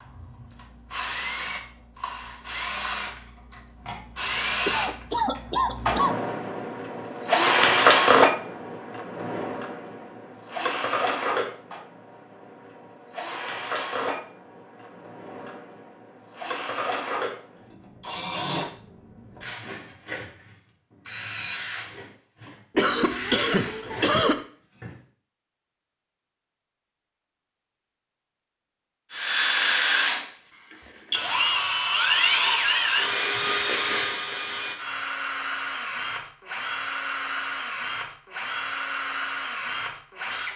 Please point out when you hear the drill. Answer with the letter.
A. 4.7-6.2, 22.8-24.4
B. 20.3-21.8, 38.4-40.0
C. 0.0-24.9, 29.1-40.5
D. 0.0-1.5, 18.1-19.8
C.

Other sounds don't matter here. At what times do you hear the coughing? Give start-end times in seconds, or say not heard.
4.7-6.2, 22.8-24.4.